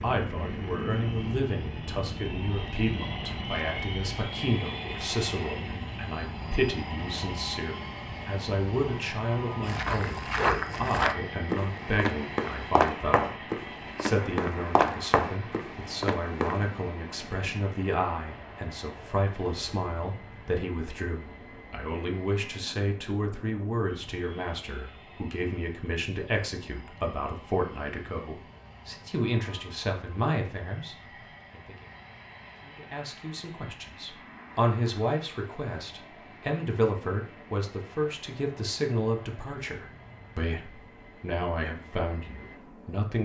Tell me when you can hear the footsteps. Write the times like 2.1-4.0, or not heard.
9.6-16.6.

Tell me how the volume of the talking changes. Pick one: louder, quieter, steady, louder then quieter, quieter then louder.
steady.